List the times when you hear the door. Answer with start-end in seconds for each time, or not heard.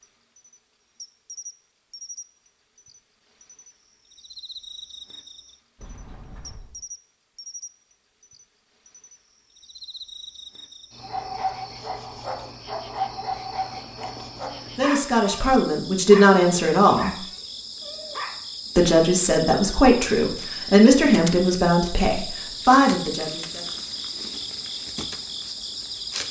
5.8-6.8.